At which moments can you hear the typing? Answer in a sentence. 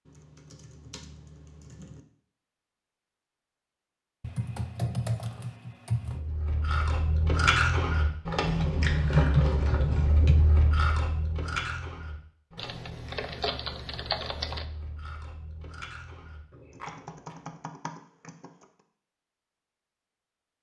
You can hear the typing from 0.1 to 2.0 s, from 4.2 to 6.2 s, from 8.4 to 10.5 s, from 12.6 to 14.7 s and from 16.7 to 18.6 s.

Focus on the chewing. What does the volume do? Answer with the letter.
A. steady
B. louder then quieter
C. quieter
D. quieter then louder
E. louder
C.